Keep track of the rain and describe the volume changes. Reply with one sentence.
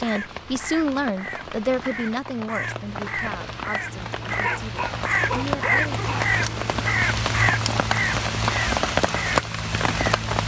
The loudness of the rain goes up.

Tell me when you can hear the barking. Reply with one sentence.
You can hear the barking from 4.2 to 6.3 s.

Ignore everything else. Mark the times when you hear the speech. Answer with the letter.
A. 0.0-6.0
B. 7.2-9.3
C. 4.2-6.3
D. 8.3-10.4
A.